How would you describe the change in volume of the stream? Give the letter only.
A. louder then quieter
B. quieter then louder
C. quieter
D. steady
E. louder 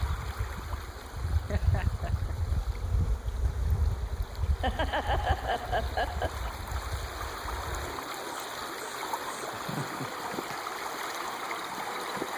E.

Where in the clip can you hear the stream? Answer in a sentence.
You can hear the stream from 0.0 to 12.3 s.